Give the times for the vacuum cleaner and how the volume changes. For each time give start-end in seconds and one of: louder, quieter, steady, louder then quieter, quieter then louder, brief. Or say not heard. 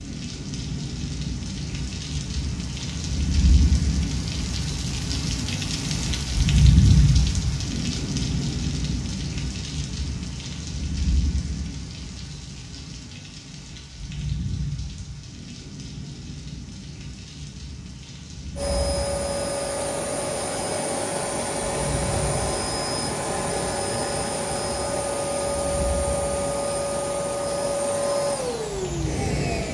18.6-29.6 steady.